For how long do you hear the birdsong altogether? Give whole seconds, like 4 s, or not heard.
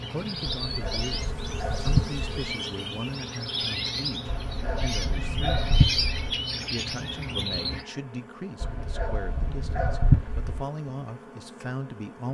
8 s.